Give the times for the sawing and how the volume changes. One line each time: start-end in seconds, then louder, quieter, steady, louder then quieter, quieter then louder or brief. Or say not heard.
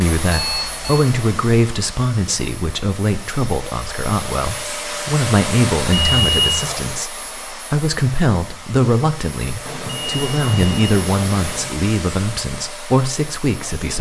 not heard.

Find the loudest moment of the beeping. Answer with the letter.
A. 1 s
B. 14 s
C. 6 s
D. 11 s
C.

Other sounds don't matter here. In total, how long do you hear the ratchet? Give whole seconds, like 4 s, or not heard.
not heard.